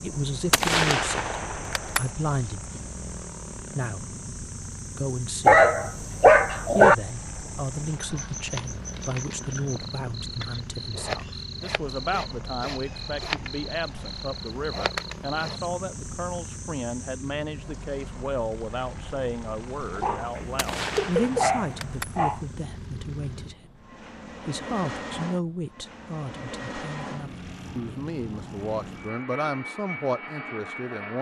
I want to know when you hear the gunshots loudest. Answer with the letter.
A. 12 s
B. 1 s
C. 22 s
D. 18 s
B.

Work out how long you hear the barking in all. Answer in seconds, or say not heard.
4 s.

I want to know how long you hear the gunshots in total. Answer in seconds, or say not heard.
3 s.